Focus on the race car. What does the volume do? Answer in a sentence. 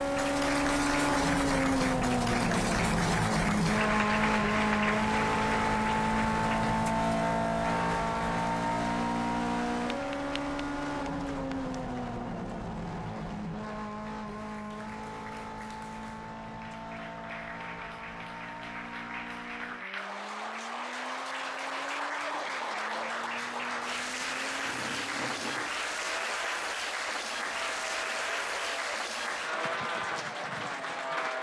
The loudness of the race car goes down, then up.